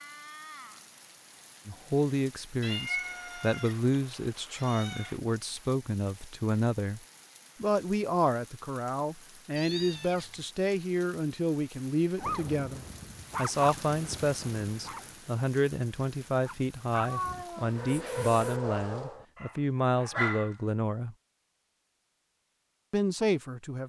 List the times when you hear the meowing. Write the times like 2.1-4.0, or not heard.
2.6-5.2, 9.6-10.4, 17.0-18.6.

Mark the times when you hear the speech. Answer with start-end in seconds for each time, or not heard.
1.6-7.0, 7.6-21.1, 22.9-23.8.